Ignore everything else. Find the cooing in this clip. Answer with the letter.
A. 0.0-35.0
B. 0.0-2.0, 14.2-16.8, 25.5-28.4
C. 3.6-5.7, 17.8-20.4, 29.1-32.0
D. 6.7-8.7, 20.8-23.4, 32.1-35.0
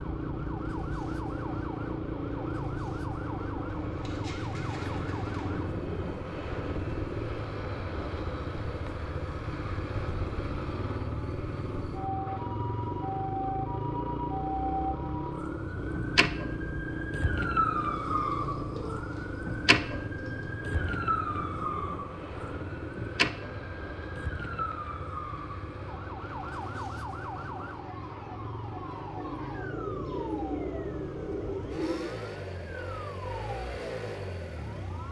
C.